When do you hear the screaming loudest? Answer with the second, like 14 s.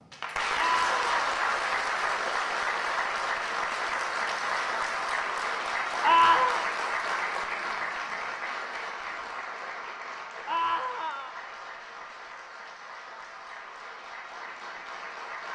6 s.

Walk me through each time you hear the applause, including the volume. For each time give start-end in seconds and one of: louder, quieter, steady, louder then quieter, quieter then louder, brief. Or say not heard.
0.0-15.5 quieter.